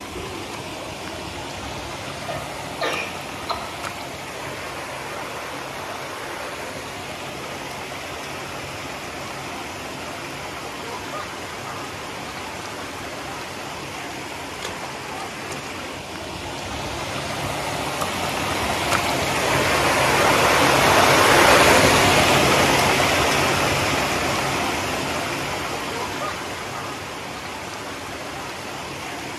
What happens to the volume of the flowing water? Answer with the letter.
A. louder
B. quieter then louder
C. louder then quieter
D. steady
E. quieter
C.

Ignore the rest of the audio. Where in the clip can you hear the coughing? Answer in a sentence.
You can hear the coughing from 2.2 to 3.5 s.